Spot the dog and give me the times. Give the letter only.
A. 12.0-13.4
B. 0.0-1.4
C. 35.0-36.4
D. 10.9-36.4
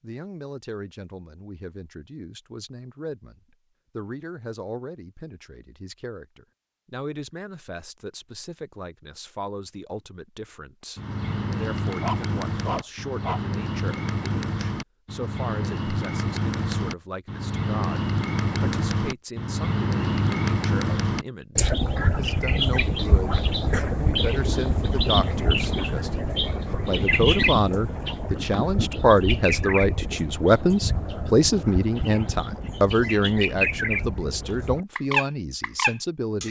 A.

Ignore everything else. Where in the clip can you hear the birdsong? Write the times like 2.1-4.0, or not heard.
10.9-36.4.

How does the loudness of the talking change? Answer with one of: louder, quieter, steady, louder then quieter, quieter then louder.
louder.